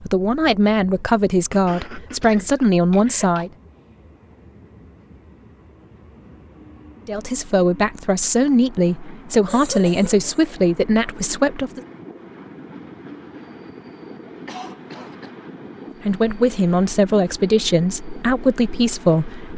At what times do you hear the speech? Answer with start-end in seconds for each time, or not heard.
0.0-3.5, 7.0-11.8, 16.0-19.5.